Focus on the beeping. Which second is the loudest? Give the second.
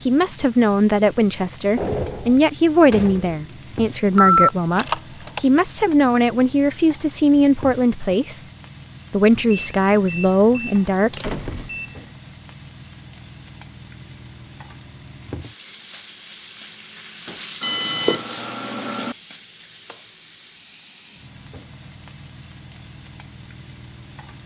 4 s.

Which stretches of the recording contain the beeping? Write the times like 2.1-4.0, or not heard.
3.5-5.4, 9.5-12.1, 17.6-19.1.